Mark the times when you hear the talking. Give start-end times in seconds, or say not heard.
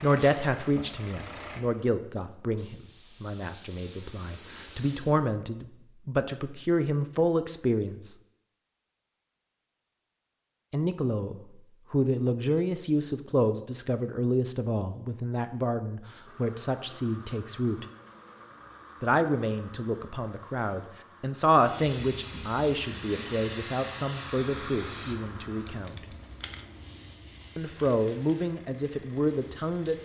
0.0-8.2, 10.7-17.9, 19.0-25.9, 27.6-29.9.